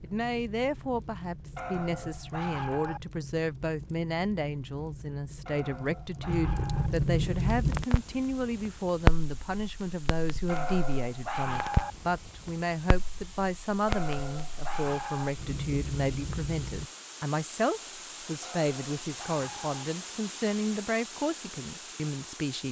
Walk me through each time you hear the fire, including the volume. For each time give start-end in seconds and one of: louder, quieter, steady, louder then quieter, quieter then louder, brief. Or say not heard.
0.0-16.9 louder then quieter.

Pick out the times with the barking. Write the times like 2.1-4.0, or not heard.
1.6-3.0, 5.5-6.9, 10.4-11.9, 13.8-15.3, 18.4-19.9.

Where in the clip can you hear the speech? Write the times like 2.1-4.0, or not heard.
0.0-22.6.